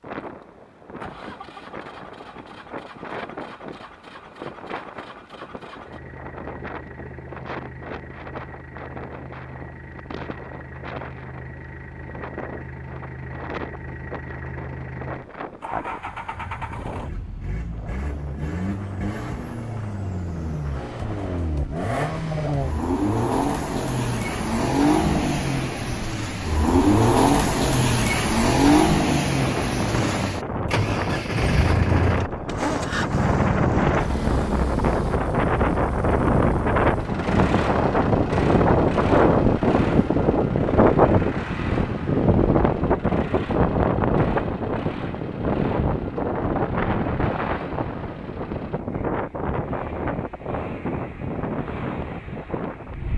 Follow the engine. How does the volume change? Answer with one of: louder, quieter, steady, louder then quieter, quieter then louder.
louder then quieter.